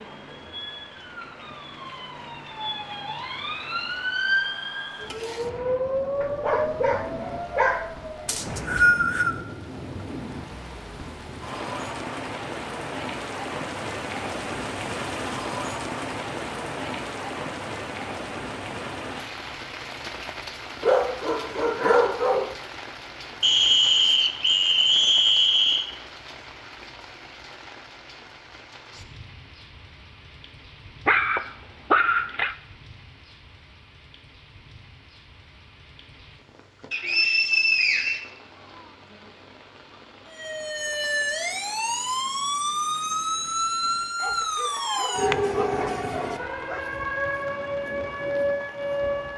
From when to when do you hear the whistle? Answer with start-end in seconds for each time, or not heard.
8.2-9.4, 23.4-25.9, 36.9-38.2.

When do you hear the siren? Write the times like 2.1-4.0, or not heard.
0.0-8.3, 40.3-49.3.